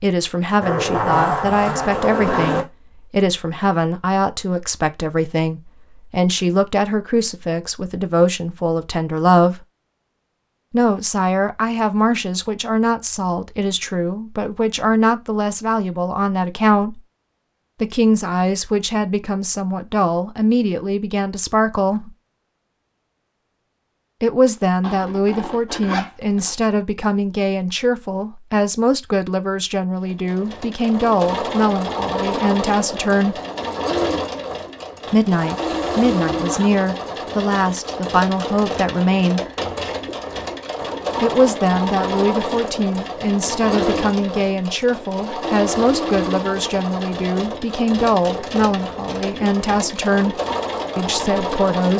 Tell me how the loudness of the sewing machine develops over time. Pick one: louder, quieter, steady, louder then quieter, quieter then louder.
steady.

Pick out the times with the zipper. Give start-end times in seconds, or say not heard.
0.6-2.6, 24.8-26.5, 35.0-36.7.